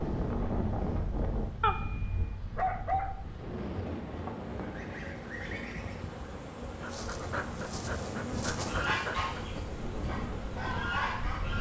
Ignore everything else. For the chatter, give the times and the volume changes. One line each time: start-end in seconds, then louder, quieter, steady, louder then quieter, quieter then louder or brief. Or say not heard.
not heard.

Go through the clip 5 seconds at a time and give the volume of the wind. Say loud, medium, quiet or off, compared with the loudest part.
loud, medium, loud.